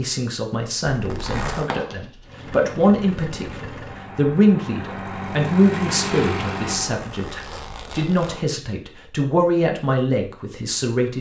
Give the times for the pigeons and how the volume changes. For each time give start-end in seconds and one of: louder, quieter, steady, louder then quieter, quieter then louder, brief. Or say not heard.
not heard.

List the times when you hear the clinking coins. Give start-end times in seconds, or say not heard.
1.6-2.5.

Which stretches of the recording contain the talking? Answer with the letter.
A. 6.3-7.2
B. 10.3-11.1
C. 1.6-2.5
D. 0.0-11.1
D.